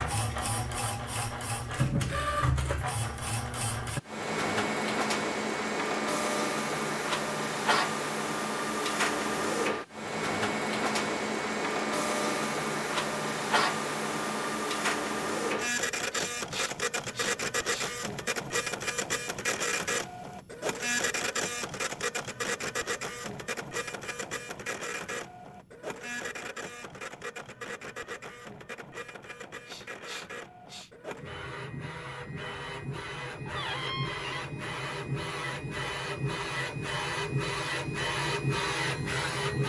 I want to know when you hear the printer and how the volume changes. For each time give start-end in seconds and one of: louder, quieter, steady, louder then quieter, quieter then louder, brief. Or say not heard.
0.0-39.6 quieter then louder.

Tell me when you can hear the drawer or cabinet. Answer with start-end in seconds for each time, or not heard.
33.5-34.5.